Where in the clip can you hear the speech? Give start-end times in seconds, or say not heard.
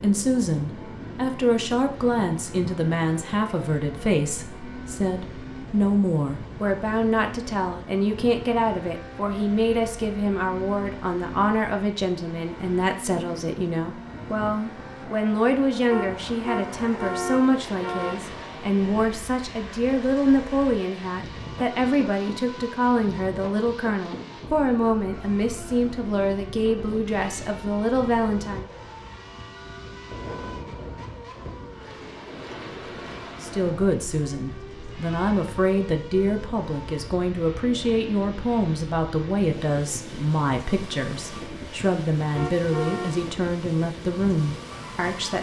0.0-28.6, 33.4-45.3.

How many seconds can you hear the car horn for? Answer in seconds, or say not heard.
3 s.